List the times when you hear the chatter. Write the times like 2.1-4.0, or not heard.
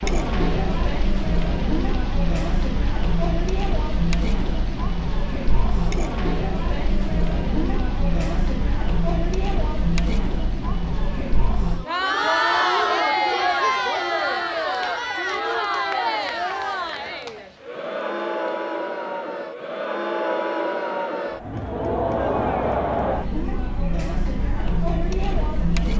0.0-25.9.